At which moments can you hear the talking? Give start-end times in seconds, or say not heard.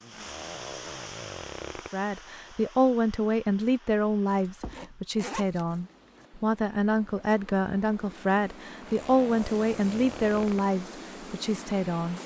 1.9-12.2.